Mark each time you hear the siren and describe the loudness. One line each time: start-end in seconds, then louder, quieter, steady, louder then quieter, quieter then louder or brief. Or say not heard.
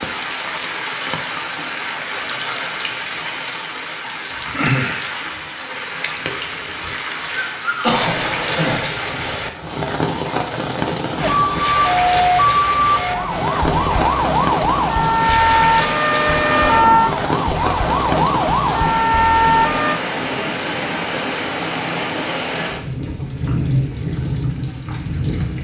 11.2-20.0 steady.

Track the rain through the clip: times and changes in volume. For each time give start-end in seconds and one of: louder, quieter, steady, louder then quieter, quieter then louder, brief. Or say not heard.
0.0-25.5 steady.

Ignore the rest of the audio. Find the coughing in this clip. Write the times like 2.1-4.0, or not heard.
7.8-8.8.